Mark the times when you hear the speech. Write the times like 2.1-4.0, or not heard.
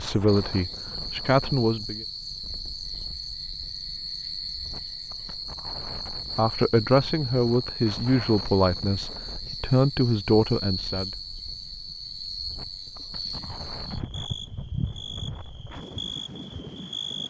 0.0-2.0, 6.3-11.1.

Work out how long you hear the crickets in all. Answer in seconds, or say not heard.
17 s.